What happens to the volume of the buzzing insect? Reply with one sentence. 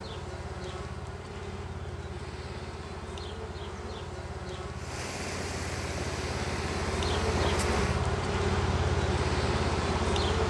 The loudness of the buzzing insect goes up.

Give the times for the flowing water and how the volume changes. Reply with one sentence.
The flowing water can be heard from 4.8 to 10.4 s, at a steady volume.